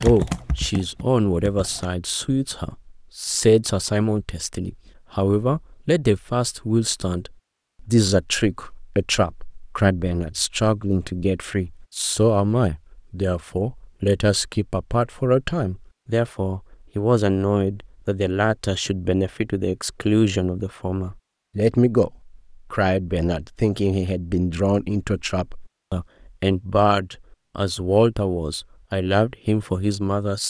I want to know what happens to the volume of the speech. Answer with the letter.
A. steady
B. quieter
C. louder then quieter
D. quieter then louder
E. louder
A.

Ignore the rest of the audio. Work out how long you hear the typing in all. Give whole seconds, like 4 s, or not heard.
2 s.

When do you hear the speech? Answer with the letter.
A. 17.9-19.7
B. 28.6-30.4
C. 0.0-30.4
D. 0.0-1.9
C.